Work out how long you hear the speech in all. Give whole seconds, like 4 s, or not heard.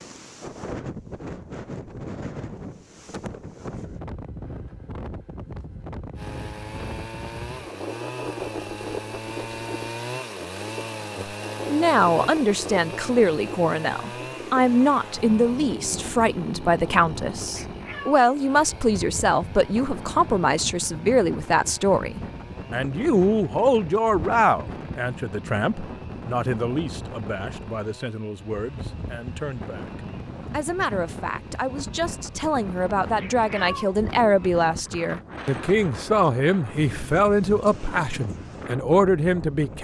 29 s.